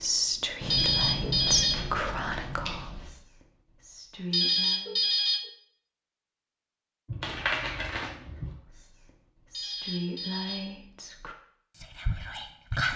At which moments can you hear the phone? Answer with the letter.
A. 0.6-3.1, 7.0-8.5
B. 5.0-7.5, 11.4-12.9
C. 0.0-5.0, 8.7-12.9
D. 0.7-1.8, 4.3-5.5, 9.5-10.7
D.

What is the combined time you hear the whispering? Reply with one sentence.
The whispering can be heard for 9 seconds in total.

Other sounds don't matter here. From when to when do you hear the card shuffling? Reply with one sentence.
The card shuffling can be heard from 0.6 to 3.1 s and from 7.0 to 8.5 s.